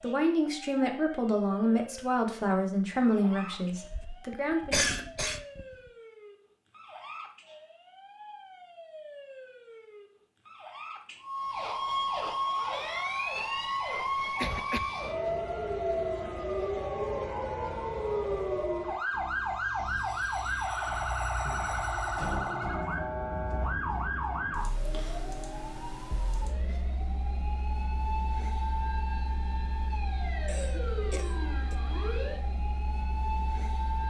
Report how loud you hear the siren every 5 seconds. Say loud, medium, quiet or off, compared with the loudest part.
quiet, quiet, loud, loud, loud, medium, medium.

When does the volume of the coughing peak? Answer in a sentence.
The volume of the coughing peaks at 5 seconds.